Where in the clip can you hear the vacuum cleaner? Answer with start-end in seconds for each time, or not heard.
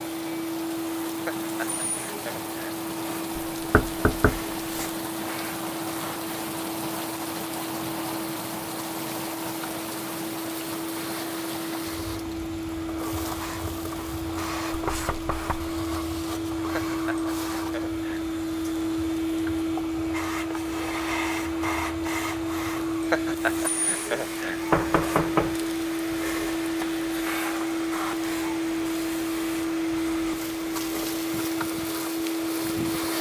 0.0-33.1.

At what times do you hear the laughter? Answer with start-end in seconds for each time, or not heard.
1.2-2.8, 16.7-18.2, 23.1-24.6.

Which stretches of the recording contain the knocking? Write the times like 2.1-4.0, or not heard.
3.4-4.9, 14.7-15.8, 24.7-25.6.